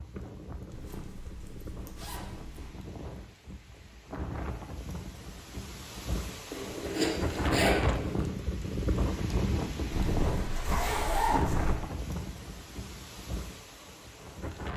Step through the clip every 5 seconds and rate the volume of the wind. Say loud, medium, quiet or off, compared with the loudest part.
medium, loud, loud.